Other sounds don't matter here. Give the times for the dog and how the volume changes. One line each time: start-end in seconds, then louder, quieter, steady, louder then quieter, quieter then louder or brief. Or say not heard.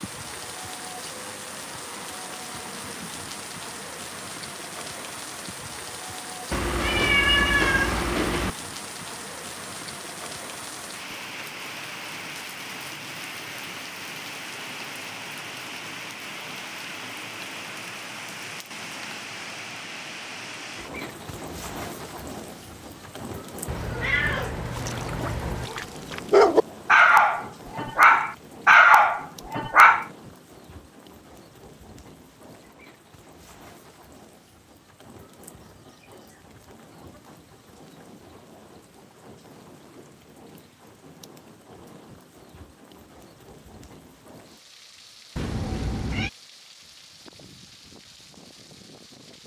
24.8-30.1 louder.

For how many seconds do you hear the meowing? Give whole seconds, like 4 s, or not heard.
5 s.